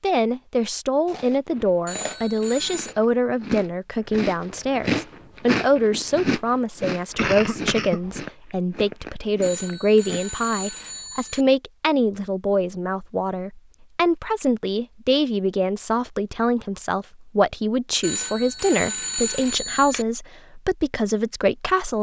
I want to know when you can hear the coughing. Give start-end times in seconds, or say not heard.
7.2-8.2.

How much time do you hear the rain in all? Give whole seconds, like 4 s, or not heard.
not heard.